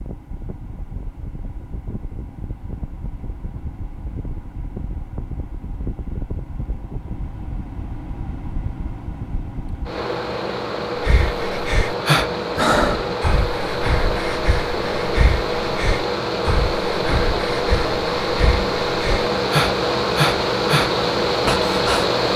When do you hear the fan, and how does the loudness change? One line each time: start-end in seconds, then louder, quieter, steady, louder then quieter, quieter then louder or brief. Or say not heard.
0.0-22.3 louder.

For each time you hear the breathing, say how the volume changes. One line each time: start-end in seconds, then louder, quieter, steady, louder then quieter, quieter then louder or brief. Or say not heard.
10.9-22.1 quieter then louder.